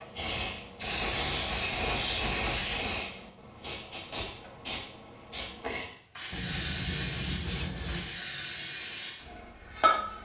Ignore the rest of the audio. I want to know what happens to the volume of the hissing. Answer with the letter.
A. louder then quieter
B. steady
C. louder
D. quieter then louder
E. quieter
E.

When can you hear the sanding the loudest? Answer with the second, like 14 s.
7 s.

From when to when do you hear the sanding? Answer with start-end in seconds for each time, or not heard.
0.8-2.8, 6.3-8.2.